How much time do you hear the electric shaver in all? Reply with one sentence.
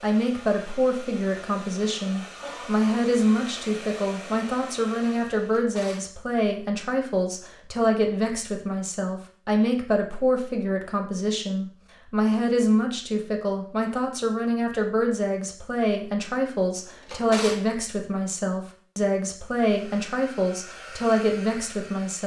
The electric shaver can't be heard in this clip.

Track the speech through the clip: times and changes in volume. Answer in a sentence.
The speech can be heard from 0.0 to 22.2 s, at a steady volume.